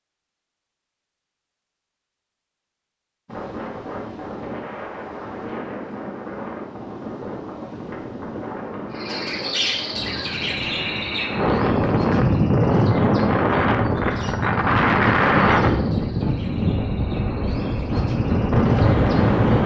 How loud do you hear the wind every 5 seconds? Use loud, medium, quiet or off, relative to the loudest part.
quiet, quiet, loud, loud.